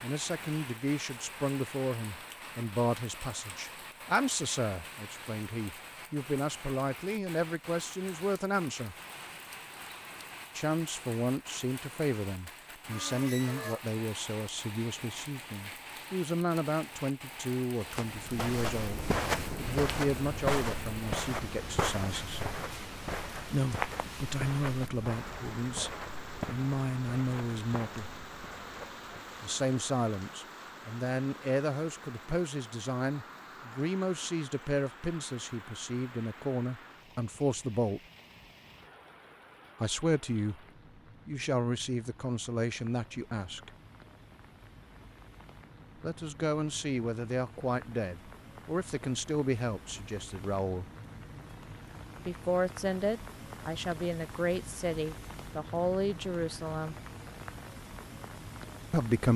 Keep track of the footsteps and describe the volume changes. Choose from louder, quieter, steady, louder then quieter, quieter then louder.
quieter.